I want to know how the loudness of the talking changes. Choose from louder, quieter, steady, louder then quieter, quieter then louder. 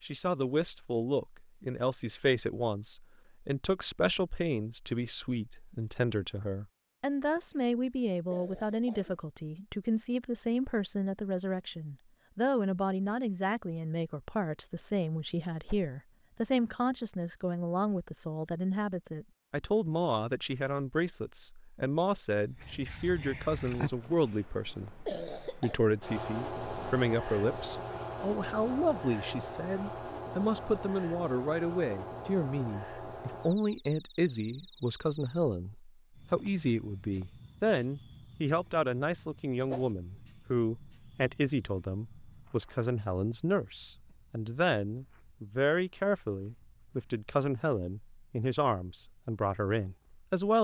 steady.